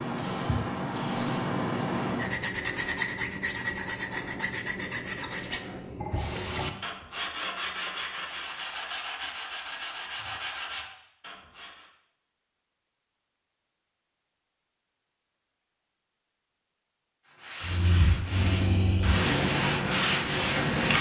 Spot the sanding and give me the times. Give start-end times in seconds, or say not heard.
2.0-11.9, 17.4-20.9.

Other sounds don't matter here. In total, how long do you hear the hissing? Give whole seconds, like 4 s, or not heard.
6 s.